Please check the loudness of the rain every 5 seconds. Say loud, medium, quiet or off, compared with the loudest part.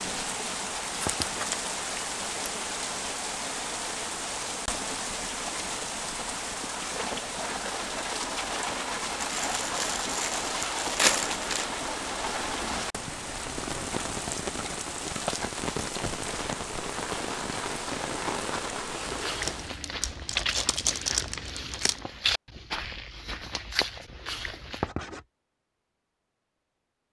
loud, loud, loud, loud, off, off.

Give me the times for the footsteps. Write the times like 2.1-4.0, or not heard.
19.1-24.9.